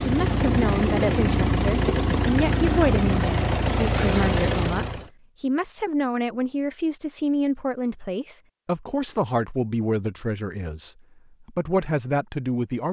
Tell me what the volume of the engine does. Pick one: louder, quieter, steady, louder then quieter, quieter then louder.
steady.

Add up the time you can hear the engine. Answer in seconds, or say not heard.
5 s.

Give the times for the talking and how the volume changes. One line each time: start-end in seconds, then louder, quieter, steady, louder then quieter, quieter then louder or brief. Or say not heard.
0.0-12.8 steady.